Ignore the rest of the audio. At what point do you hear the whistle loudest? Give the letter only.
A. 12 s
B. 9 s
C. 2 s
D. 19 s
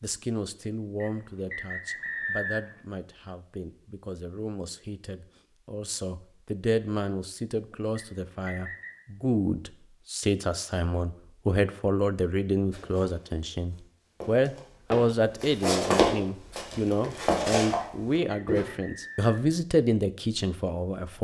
C.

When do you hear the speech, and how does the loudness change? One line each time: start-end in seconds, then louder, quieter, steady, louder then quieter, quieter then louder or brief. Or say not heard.
0.0-21.1 louder.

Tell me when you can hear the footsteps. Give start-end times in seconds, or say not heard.
12.7-18.7.